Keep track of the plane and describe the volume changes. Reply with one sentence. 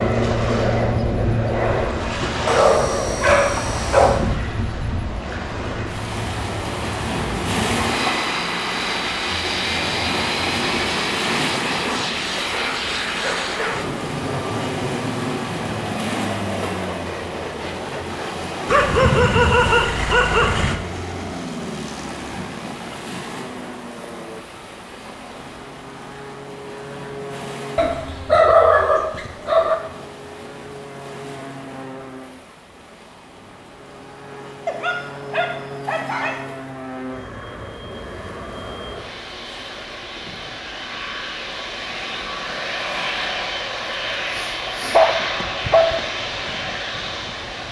The loudness of the plane goes down, then up.